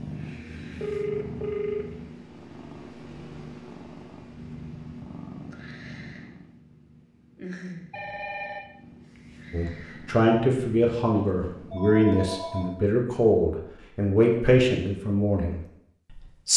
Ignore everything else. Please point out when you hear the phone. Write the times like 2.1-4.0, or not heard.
0.8-2.0, 7.9-8.7, 11.1-12.7.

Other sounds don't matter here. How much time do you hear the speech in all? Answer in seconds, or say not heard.
7 s.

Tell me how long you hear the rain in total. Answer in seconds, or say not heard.
not heard.